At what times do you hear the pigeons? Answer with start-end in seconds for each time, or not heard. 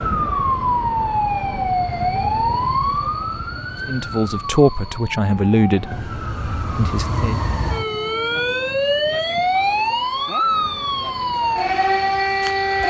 not heard.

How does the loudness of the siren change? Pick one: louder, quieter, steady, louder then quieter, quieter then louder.
quieter then louder.